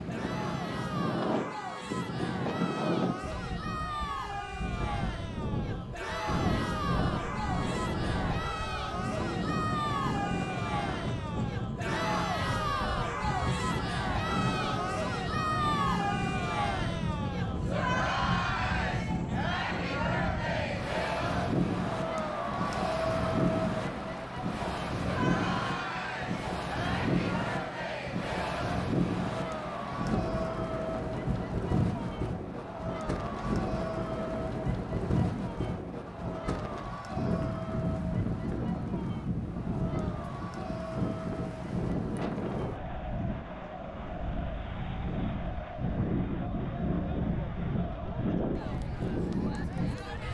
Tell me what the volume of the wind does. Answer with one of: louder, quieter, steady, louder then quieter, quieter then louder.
steady.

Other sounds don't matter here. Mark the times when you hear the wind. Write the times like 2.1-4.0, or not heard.
0.0-50.2.